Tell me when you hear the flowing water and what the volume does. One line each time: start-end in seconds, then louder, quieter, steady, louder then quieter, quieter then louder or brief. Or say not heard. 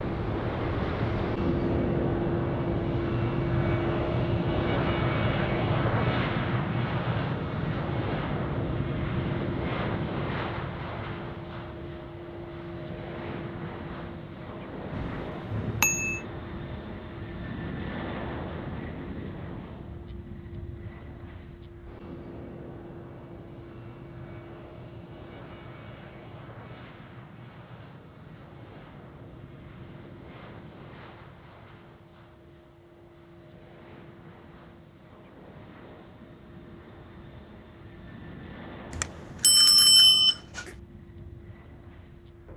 not heard.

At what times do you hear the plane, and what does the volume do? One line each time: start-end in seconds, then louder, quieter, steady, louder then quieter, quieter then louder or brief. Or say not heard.
0.0-42.5 quieter.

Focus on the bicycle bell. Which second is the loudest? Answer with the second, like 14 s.
40 s.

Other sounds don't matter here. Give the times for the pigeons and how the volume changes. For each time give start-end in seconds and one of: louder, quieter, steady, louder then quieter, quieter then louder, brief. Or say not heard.
not heard.